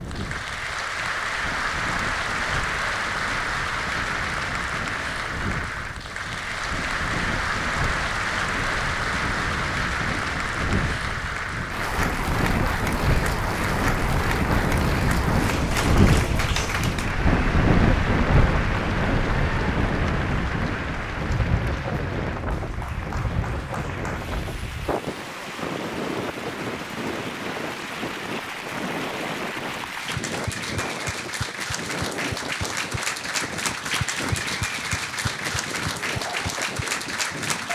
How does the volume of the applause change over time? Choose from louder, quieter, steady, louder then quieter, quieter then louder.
quieter then louder.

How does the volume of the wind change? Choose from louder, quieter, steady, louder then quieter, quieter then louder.
louder then quieter.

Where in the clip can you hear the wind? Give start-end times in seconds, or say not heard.
0.0-37.7.